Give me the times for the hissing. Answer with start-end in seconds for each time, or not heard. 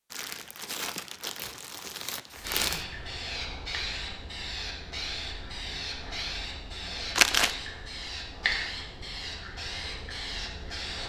2.4-11.0.